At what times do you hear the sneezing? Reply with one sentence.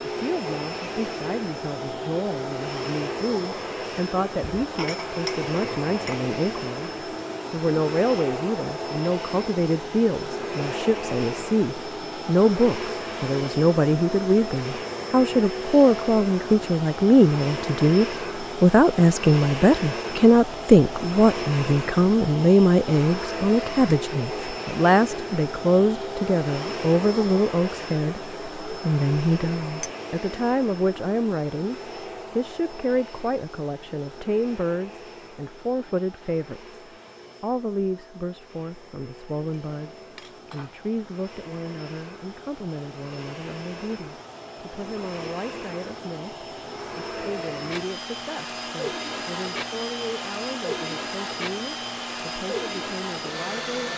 The sneezing can't be heard in this clip.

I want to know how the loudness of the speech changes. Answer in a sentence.
The loudness of the speech goes up, then down.